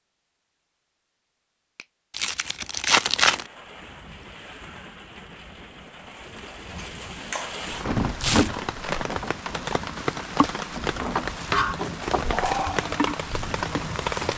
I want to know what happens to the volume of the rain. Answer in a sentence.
The loudness of the rain goes up.